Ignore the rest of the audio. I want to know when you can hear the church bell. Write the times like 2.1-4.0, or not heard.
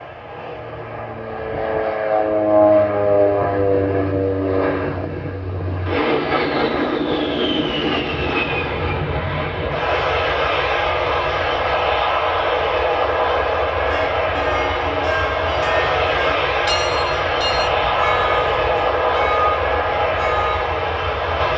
13.8-20.7.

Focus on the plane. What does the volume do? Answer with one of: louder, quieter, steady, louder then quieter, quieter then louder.
steady.